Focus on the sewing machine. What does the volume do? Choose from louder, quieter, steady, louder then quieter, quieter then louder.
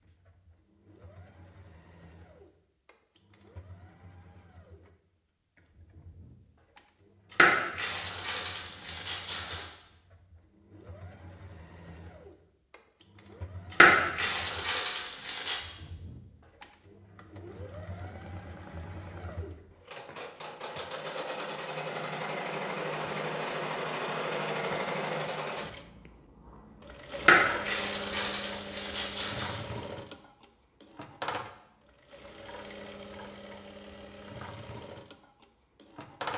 louder then quieter.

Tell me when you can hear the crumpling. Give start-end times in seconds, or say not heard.
7.3-9.7, 13.7-15.6, 27.2-29.6.